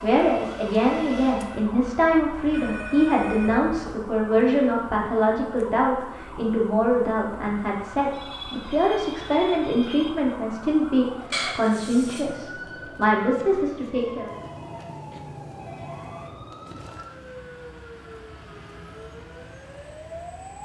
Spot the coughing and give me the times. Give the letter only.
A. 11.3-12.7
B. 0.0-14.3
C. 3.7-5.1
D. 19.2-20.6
A.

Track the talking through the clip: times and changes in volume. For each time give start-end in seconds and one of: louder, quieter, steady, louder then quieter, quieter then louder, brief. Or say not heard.
0.0-14.3 steady.